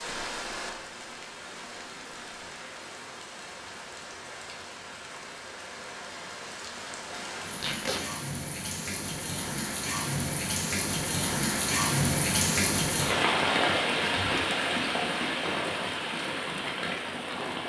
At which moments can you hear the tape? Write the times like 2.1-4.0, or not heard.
7.5-8.1.